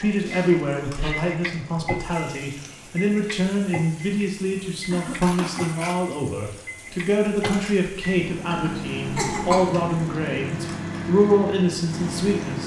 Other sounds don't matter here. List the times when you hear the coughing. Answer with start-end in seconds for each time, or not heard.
0.2-1.1, 4.9-5.7, 8.5-9.7.